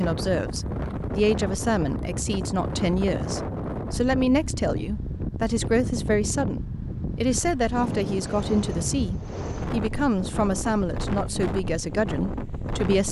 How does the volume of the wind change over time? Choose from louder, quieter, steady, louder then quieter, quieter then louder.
steady.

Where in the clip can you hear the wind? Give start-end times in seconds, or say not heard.
0.0-13.0.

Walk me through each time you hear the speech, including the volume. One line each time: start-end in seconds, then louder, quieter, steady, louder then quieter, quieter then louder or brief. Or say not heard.
0.0-13.0 steady.